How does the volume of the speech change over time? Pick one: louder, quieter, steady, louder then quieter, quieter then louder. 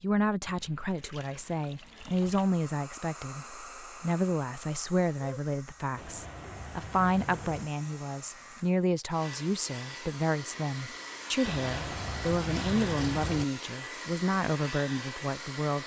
steady.